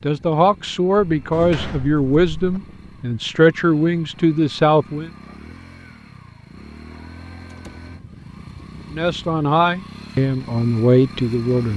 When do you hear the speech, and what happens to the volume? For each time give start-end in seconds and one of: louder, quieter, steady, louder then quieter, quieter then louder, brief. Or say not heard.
0.0-5.1 steady
8.9-11.7 brief.